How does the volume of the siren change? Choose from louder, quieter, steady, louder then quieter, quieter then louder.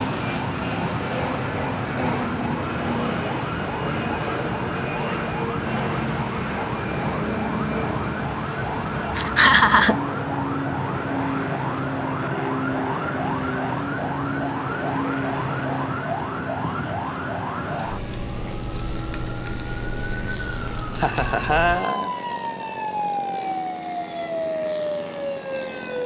steady.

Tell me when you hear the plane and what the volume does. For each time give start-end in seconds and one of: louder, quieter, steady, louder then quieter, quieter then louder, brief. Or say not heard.
0.0-26.0 quieter.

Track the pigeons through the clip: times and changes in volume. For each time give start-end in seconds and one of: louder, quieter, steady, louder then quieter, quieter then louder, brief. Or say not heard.
not heard.